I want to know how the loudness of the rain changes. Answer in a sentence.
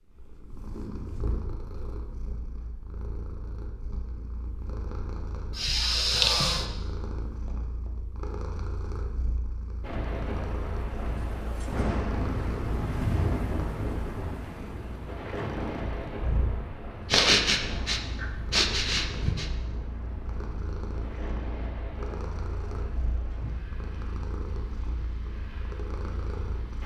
The loudness of the rain goes down.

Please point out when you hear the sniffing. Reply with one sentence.
The sniffing can be heard from 5.5 to 6.7 s and from 17.1 to 19.5 s.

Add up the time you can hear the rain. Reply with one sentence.
The rain can be heard for 17 seconds in total.